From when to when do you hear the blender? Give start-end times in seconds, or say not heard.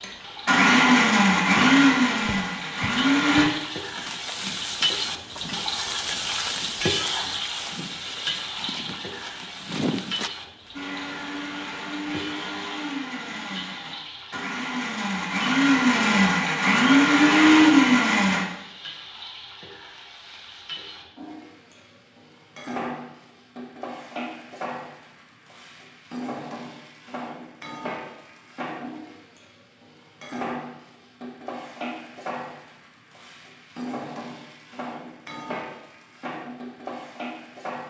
0.0-3.5, 10.7-18.4.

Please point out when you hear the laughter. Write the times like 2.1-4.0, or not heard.
not heard.